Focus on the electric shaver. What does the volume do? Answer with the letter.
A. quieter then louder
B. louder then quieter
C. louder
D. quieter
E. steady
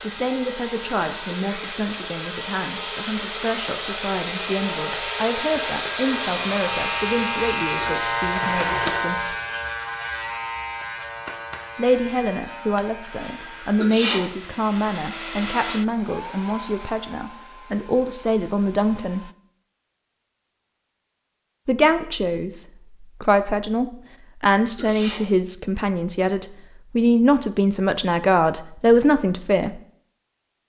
B.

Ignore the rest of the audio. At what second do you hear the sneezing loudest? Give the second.
14 s.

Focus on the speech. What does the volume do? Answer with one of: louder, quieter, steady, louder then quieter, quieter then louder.
louder.